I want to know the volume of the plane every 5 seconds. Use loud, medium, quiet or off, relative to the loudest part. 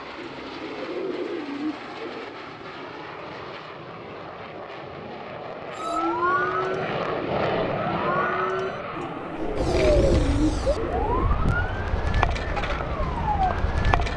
medium, loud, medium.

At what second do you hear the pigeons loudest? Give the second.
10 s.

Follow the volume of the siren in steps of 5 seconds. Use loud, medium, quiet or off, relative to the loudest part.
off, loud, loud.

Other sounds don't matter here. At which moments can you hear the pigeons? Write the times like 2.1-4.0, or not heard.
0.1-2.4, 8.9-11.3.